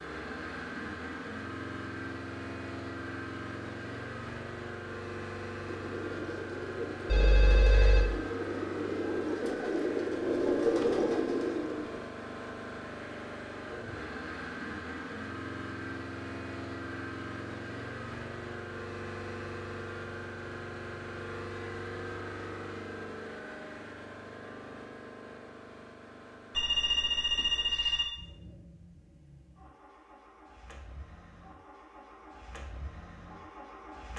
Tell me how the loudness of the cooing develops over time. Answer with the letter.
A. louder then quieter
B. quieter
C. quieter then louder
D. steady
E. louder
E.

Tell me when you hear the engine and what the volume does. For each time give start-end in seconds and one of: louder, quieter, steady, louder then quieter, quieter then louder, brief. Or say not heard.
0.0-34.1 quieter.